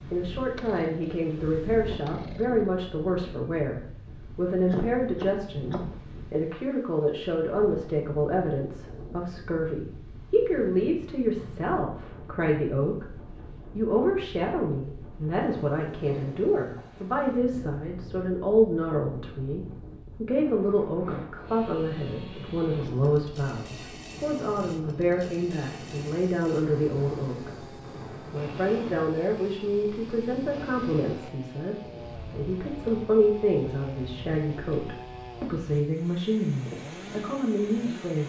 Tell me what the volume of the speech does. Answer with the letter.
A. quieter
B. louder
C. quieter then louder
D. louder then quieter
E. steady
E.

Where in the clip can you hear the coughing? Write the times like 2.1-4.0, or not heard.
4.7-5.9.